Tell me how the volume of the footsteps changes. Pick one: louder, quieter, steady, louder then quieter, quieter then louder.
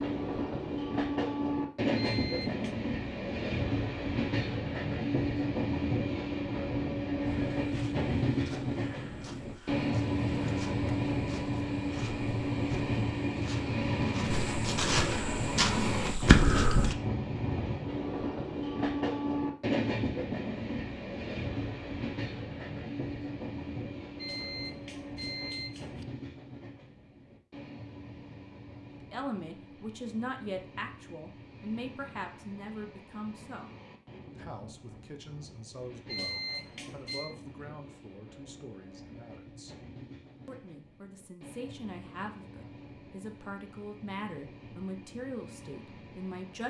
louder.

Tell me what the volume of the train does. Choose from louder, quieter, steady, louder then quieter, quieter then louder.
quieter.